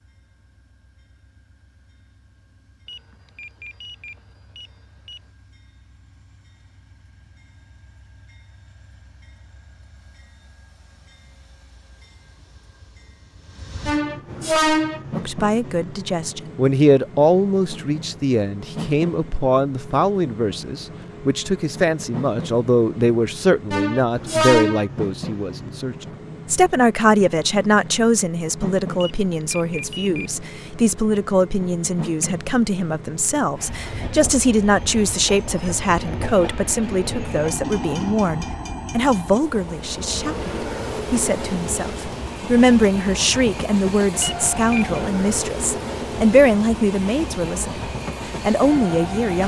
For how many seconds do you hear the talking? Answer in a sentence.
You can hear the talking for 34 seconds altogether.